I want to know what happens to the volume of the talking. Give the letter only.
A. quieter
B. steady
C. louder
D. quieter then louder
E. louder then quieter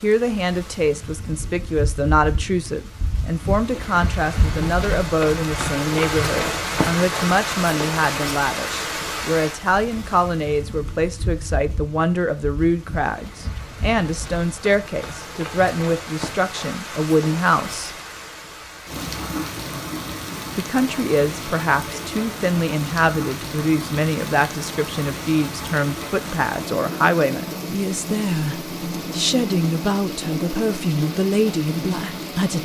B.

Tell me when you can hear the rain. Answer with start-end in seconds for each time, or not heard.
0.0-32.5.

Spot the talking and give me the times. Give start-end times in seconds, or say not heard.
0.0-17.9, 20.6-32.5.